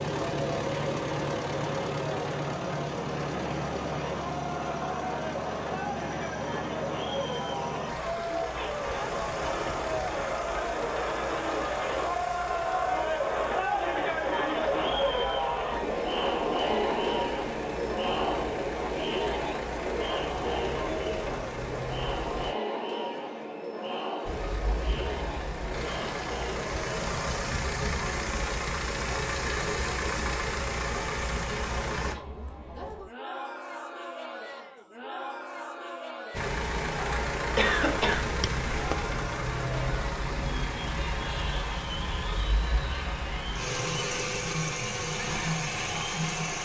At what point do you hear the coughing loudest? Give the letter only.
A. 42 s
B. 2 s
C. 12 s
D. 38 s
D.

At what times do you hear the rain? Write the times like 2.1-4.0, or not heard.
not heard.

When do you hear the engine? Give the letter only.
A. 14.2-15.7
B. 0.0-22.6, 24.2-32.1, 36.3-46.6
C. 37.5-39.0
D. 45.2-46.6
B.